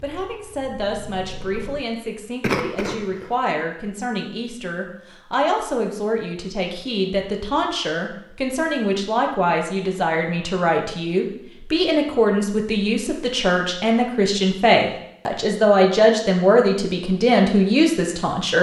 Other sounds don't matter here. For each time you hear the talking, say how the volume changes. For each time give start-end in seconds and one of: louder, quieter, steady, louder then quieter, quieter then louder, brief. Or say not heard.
0.0-18.5 louder.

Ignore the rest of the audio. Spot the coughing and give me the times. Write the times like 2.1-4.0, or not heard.
2.4-3.3.